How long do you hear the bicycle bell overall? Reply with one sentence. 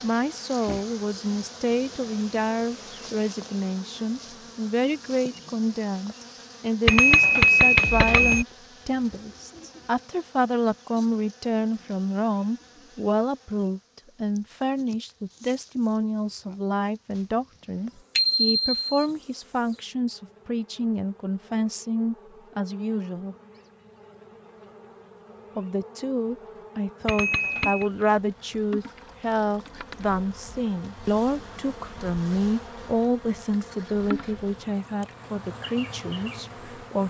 The bicycle bell can be heard for 3 seconds in total.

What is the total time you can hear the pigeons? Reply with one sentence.
The pigeons can't be heard in this clip.